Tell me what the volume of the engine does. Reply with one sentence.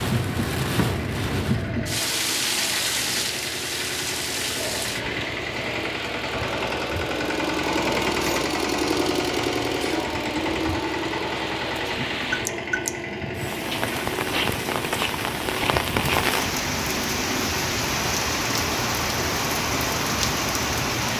The loudness of the engine goes up, then down.